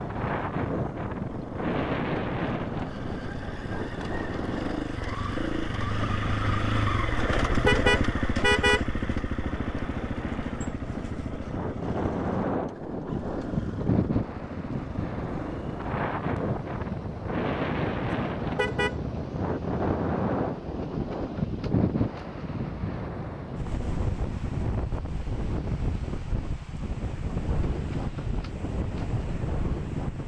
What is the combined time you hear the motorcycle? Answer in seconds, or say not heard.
30 s.